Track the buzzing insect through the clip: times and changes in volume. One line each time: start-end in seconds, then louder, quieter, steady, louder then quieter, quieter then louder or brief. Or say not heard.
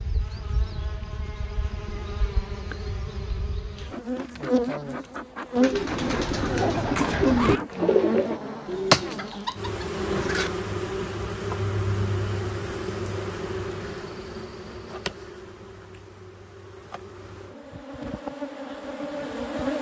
0.0-19.7 louder then quieter.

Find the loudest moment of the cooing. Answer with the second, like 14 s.
7 s.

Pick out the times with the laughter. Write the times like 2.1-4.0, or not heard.
6.6-7.6.